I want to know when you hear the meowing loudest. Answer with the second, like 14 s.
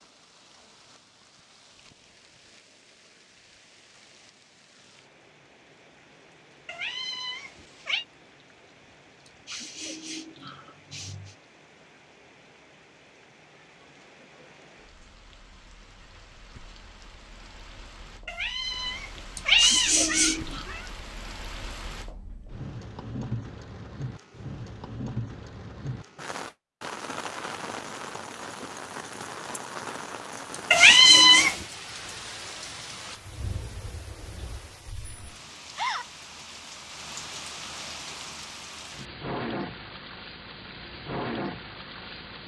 31 s.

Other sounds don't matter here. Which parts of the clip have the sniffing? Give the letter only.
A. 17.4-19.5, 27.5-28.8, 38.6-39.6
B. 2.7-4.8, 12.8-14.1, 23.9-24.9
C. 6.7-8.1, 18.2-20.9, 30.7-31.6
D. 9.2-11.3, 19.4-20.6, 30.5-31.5
D.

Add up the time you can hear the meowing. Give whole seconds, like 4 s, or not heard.
5 s.